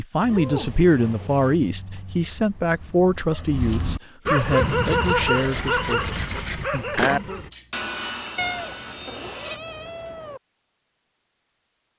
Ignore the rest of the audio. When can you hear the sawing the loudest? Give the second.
7 s.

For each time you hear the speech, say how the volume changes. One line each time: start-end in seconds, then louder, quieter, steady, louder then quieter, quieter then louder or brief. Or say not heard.
0.0-7.5 quieter.